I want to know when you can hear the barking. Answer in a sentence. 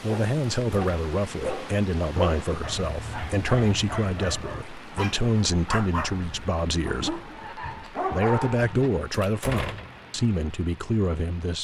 You can hear the barking from 0.1 to 8.9 s.